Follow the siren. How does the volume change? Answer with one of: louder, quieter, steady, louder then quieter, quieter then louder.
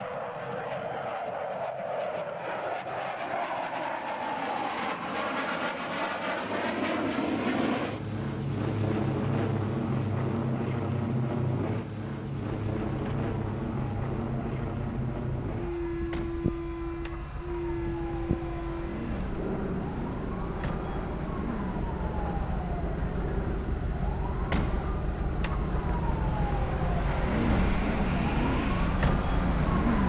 louder.